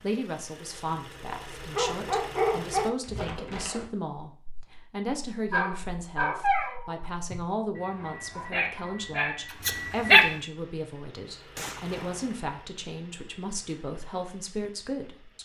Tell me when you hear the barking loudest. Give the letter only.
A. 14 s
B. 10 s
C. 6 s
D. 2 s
B.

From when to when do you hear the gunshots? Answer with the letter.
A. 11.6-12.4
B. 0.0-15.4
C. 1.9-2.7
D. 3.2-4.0
A.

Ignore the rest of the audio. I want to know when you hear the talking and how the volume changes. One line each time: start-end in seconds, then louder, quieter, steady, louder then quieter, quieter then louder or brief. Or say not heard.
0.0-15.4 steady.